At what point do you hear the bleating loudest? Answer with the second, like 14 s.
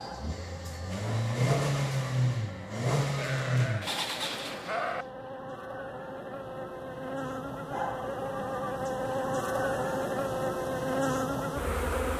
5 s.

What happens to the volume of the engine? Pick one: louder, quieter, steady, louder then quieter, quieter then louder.
louder then quieter.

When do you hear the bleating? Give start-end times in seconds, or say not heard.
3.1-5.0.